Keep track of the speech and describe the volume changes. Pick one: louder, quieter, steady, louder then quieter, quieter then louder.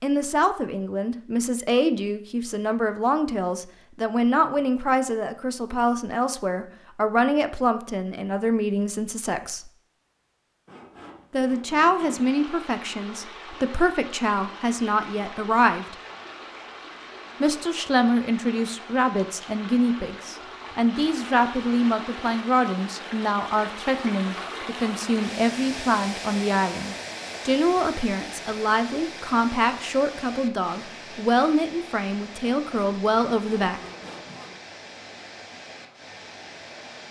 steady.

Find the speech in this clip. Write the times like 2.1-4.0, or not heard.
0.0-9.7, 11.3-15.9, 17.4-33.8.